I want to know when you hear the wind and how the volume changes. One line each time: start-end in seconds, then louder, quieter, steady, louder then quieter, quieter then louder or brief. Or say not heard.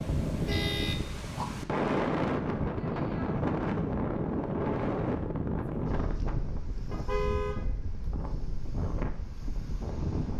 0.0-10.3 quieter.